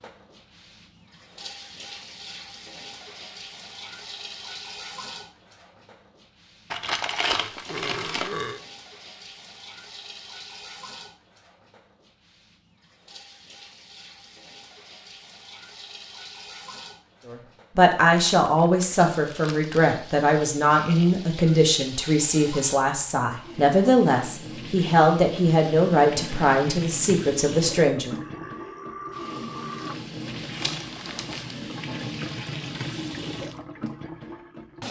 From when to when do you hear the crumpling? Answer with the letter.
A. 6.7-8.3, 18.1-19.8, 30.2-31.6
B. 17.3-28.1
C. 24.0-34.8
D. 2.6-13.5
A.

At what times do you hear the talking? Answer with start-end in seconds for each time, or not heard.
17.3-28.1.